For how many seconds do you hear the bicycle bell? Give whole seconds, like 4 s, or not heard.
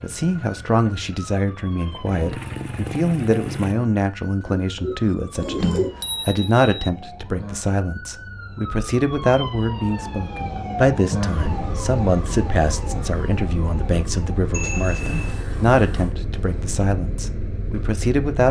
2 s.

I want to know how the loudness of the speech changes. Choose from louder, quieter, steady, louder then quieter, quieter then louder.
steady.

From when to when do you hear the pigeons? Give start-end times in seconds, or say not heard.
4.5-6.0.